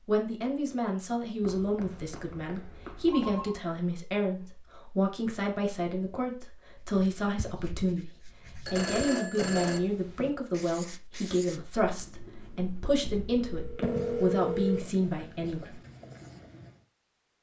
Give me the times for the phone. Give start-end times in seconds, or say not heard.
1.4-3.5, 8.7-9.8, 13.4-14.8.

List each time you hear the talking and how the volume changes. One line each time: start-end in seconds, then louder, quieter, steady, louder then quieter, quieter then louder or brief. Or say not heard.
0.1-15.8 steady.